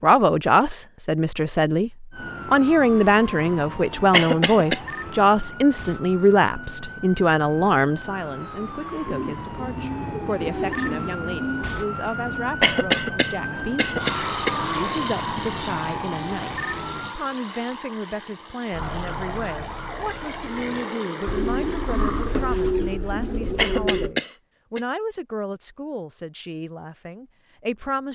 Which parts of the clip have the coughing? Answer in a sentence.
You can hear the coughing from 4.1 to 4.8 s, from 12.6 to 14.6 s and from 23.6 to 24.8 s.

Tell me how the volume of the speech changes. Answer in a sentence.
The volume of the speech goes down.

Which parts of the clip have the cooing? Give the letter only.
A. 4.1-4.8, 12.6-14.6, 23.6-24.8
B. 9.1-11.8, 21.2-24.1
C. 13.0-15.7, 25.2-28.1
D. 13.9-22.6
B.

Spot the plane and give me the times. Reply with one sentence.
You can hear the plane from 13.9 to 22.6 s.